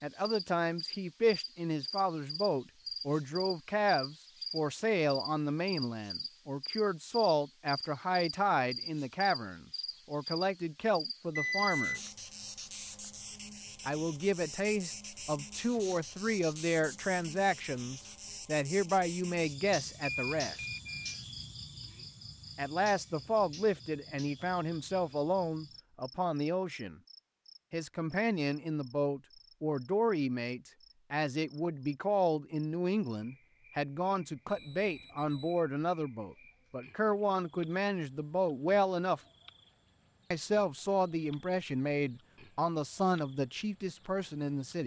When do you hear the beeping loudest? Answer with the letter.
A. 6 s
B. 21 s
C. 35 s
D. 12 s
D.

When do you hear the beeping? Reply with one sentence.
You can hear the beeping from 11.3 to 12.0 s, from 20.1 to 21.2 s and from 34.5 to 35.6 s.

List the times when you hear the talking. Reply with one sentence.
You can hear the talking from 0.0 to 12.0 s, from 13.8 to 20.6 s, from 22.6 to 27.0 s, from 27.7 to 39.2 s and from 40.3 to 44.8 s.